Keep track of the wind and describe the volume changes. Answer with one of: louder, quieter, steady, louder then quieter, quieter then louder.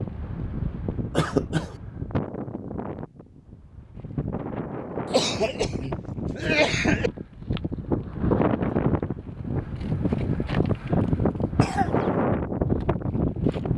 louder.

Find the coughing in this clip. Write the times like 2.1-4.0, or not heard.
1.1-1.7, 5.1-7.1, 11.6-12.1.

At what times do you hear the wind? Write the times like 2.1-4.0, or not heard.
0.0-13.7.